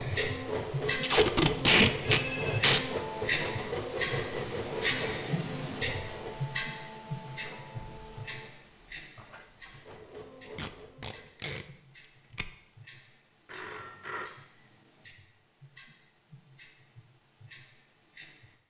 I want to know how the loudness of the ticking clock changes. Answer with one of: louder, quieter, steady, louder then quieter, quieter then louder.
quieter.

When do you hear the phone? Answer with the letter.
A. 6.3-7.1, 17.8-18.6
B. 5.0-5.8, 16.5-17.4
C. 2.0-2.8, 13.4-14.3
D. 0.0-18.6
C.